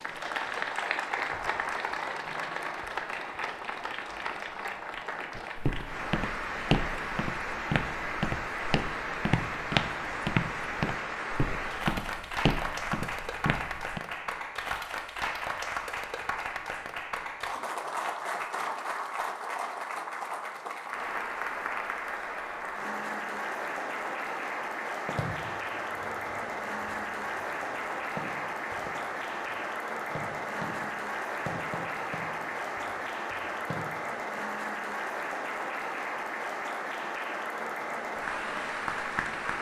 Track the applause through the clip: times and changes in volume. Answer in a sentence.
The applause can be heard from 0.0 to 39.5 s, at a steady volume.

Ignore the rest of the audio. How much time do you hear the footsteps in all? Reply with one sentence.
The footsteps can be heard for 9 seconds in total.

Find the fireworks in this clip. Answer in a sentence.
The fireworks can be heard from 25.1 to 34.4 s.